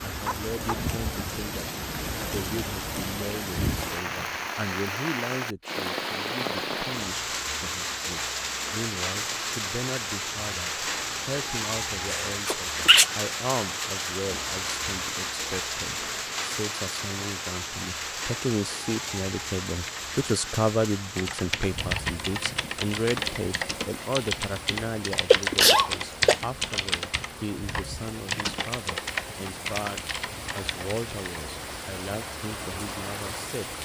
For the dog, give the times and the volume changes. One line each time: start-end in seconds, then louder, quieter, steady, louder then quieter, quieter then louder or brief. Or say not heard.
not heard.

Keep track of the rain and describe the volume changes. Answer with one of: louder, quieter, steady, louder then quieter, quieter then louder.
quieter.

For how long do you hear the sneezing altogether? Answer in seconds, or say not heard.
2 s.